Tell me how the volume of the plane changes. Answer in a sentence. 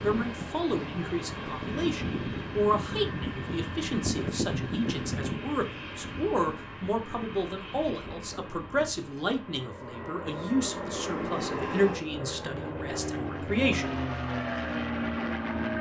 The loudness of the plane goes down, then up.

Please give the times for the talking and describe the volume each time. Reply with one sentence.
The talking can be heard from 0.0 to 13.9 s, at a steady volume.